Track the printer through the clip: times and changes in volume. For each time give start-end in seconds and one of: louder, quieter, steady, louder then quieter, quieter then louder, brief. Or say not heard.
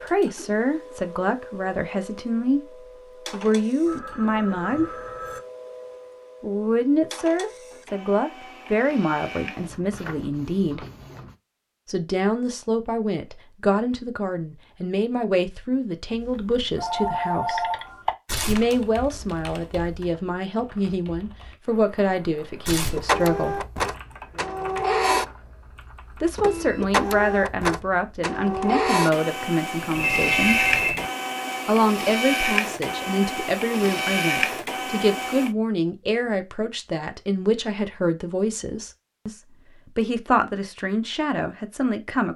0.0-11.3 steady
22.9-35.5 steady.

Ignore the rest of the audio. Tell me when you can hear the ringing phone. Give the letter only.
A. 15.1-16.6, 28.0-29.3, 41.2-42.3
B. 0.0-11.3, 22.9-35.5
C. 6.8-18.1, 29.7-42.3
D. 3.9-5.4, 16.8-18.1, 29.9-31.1
D.